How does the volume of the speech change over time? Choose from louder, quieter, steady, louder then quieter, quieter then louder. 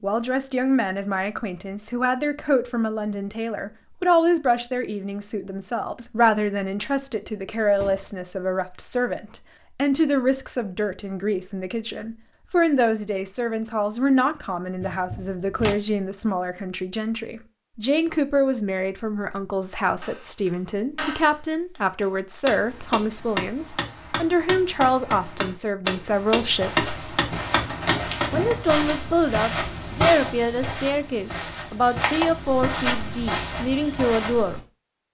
steady.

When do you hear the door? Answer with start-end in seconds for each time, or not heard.
7.8-8.2, 14.8-15.8, 27.6-28.6.